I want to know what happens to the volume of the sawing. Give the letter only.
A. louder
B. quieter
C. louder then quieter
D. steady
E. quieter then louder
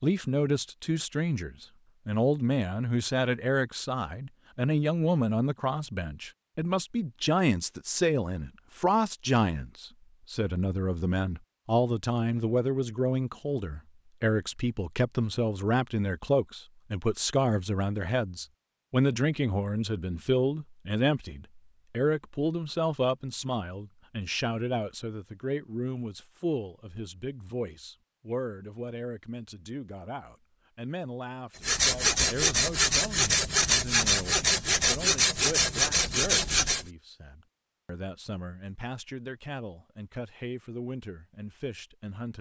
D.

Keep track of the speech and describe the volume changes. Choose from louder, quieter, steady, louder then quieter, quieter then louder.
quieter.